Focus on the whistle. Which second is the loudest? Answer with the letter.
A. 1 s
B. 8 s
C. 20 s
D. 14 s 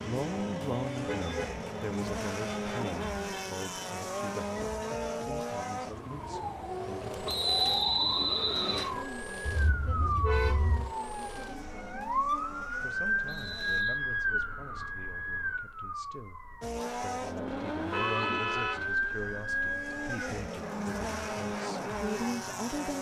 B.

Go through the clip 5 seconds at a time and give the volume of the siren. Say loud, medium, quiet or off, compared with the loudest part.
medium, medium, loud, loud, medium.